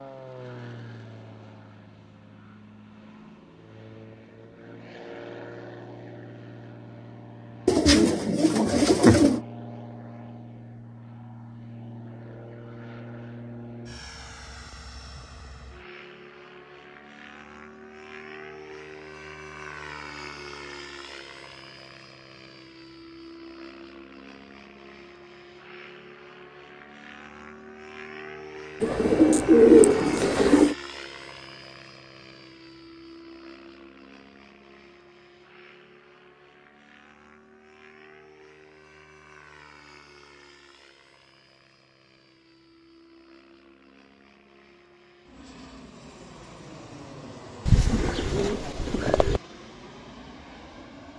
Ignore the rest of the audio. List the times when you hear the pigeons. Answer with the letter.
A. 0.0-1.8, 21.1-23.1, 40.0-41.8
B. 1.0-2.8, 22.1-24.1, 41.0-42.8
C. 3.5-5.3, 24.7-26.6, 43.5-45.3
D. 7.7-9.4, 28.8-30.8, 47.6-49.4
D.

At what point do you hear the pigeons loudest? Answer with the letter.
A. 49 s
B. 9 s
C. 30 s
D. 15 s
C.